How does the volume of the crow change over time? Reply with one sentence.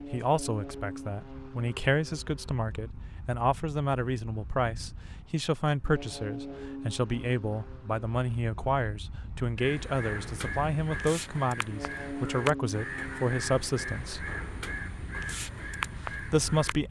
The loudness of the crow stays about the same.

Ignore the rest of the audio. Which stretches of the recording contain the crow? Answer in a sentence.
The crow can be heard from 9.6 to 16.8 s.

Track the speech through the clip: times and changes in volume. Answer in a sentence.
The speech can be heard from 0.1 to 14.2 s, at a steady volume; and briefly from 16.1 to 16.8 s.